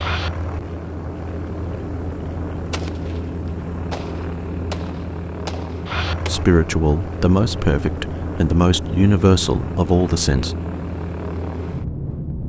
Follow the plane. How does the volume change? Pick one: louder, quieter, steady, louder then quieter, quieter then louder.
steady.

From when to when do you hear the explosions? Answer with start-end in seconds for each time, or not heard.
2.7-6.3.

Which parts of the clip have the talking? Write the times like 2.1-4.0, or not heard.
6.2-10.6.